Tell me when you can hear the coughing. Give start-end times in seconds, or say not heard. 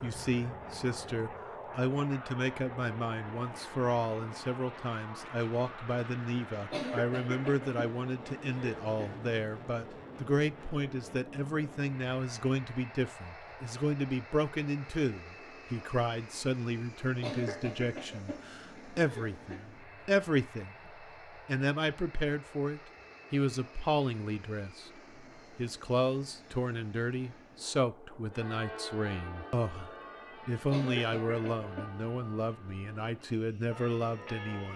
6.7-9.2, 17.2-19.7, 30.7-31.9.